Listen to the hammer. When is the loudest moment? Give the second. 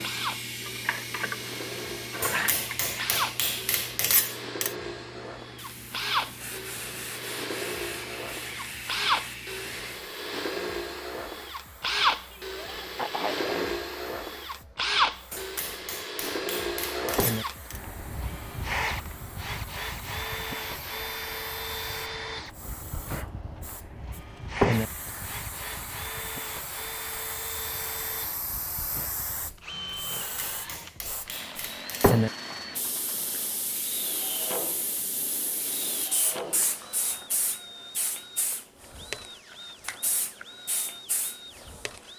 4 s.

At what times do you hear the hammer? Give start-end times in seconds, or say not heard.
2.2-4.8, 15.3-17.8, 30.1-32.2.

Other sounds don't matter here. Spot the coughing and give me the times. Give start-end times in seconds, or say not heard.
12.3-13.8.